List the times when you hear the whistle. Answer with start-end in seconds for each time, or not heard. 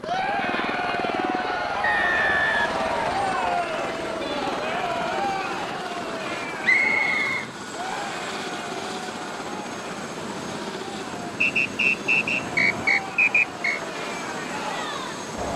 1.8-3.5, 6.6-8.0, 11.4-13.8.